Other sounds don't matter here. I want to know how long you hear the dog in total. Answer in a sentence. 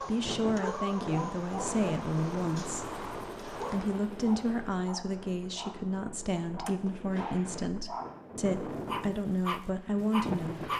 You can hear the dog for 11 seconds altogether.